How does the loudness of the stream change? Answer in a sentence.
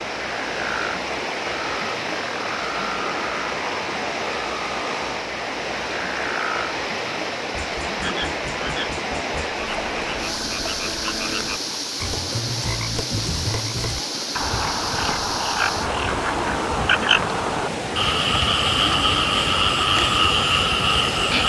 The volume of the stream stays about the same.